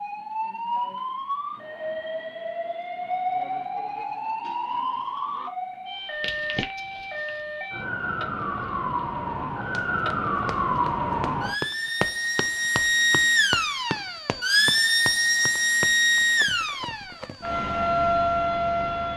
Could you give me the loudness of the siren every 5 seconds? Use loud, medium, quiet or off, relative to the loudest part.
medium, medium, loud, loud.